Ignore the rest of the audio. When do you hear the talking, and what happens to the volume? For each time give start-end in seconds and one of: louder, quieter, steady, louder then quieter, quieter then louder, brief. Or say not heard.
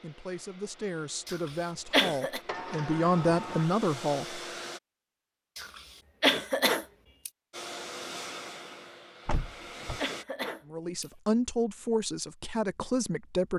0.0-4.4 louder
10.7-13.5 brief.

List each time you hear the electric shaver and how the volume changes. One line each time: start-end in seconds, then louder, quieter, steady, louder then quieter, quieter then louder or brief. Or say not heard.
not heard.